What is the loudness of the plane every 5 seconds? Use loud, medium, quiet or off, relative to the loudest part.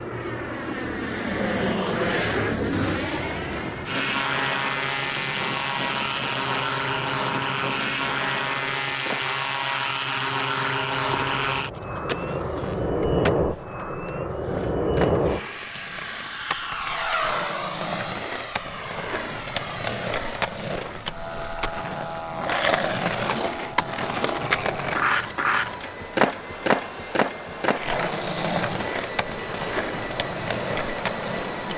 loud, loud, loud, loud, medium, medium, medium.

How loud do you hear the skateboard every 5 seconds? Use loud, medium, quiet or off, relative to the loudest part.
medium, medium, medium, medium, loud, loud, medium.